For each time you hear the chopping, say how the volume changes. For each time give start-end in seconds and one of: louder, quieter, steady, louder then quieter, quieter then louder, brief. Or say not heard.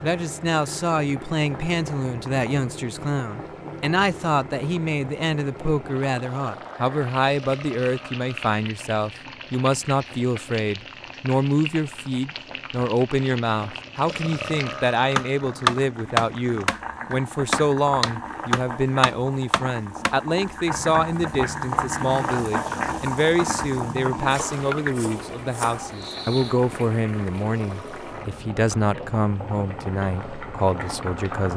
14.7-25.9 quieter.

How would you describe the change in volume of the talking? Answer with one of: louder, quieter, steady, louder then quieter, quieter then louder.
steady.